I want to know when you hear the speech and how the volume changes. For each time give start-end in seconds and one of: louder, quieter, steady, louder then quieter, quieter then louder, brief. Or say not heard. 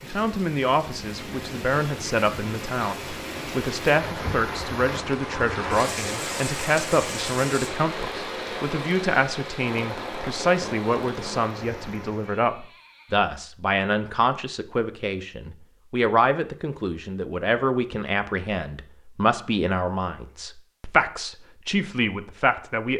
0.0-22.9 steady.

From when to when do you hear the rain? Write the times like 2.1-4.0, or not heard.
0.0-12.4.